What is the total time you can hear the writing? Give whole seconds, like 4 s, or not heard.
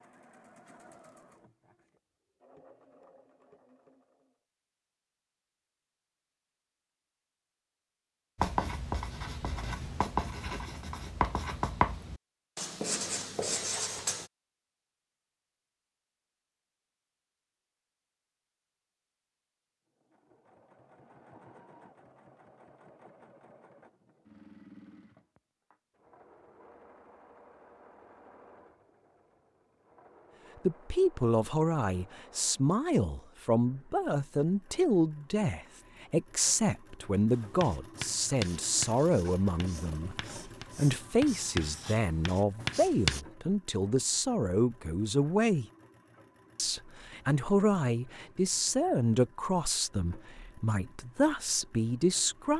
12 s.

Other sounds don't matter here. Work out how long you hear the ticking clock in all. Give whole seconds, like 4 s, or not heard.
not heard.